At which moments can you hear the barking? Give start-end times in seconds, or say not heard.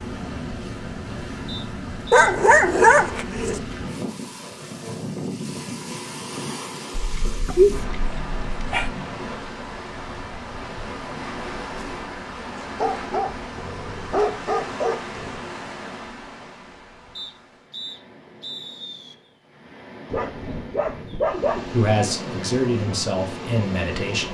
2.1-3.6, 7.0-8.9, 12.8-15.4, 20.1-21.8.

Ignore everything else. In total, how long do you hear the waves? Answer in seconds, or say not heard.
24 s.